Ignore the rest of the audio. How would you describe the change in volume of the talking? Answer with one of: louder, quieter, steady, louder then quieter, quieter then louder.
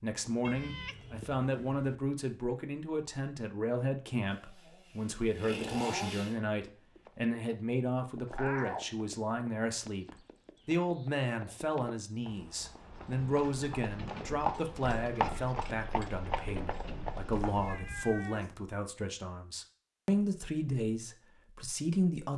steady.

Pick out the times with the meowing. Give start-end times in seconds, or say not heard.
0.4-2.0, 8.3-8.9, 17.4-18.6.